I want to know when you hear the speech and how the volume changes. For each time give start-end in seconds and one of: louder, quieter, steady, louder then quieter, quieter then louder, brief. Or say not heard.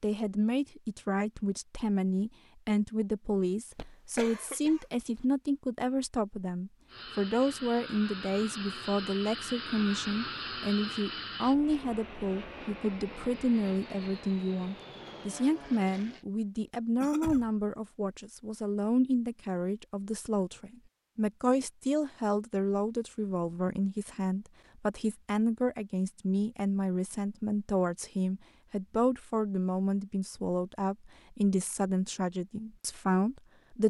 0.0-33.8 steady.